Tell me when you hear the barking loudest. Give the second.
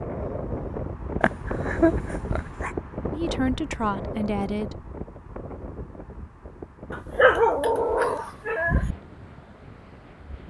7 s.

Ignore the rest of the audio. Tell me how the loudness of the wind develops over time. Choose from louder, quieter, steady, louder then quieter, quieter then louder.
quieter.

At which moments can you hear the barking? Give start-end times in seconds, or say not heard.
1.2-2.7, 6.9-8.9.